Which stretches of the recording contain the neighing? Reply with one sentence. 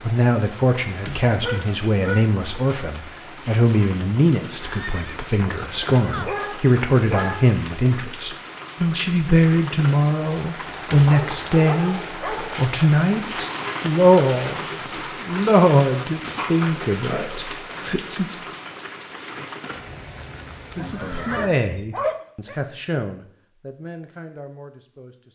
You can hear the neighing from 4.6 to 6.3 s and from 20.8 to 21.6 s.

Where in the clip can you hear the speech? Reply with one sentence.
The speech can be heard from 0.0 to 18.5 s and from 20.8 to 25.2 s.